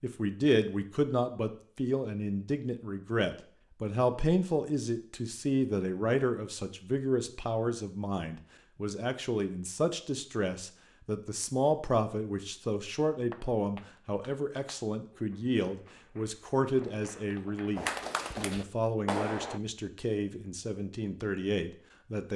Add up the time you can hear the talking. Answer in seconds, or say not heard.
22 s.